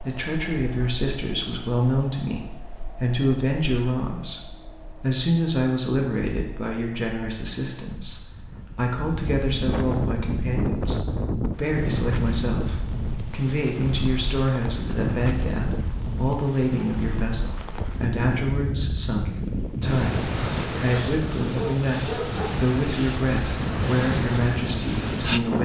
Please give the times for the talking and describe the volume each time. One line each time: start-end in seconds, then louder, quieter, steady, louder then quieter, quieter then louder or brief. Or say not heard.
0.0-25.5 steady.